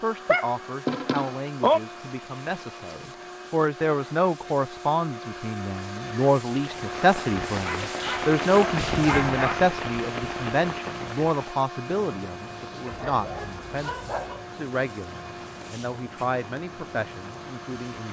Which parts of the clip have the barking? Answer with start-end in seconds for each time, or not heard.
0.2-1.8, 7.6-9.6, 12.8-14.4.